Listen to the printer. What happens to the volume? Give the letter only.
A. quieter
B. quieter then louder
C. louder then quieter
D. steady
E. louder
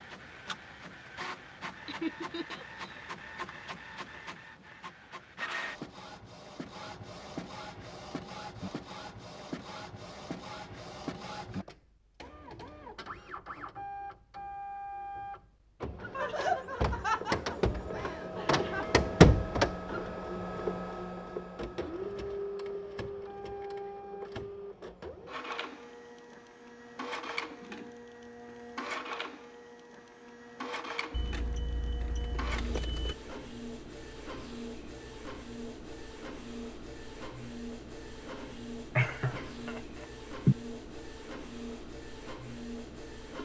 C.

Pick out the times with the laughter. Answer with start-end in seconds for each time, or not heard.
1.9-2.9, 16.1-18.9, 39.0-40.5.